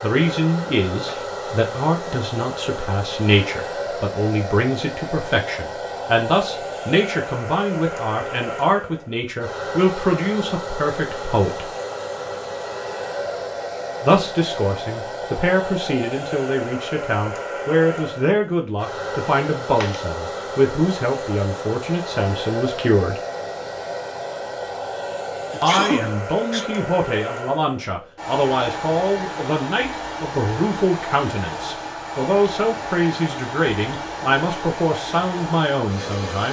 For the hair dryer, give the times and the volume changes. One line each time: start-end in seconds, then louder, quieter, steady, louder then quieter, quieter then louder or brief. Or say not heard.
0.0-36.4 steady.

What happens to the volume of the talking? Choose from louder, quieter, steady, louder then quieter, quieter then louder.
steady.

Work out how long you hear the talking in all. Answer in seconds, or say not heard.
32 s.